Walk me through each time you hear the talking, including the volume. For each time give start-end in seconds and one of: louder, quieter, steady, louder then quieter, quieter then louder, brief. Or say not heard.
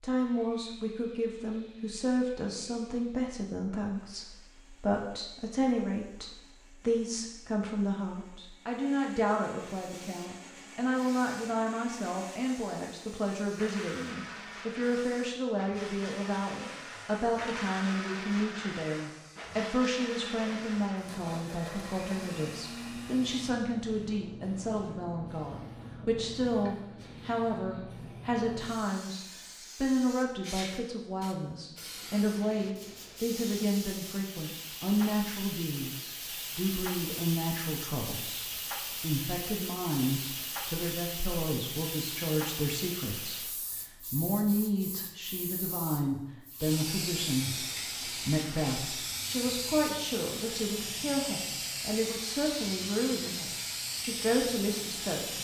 0.0-55.4 steady.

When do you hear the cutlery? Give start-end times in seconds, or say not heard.
not heard.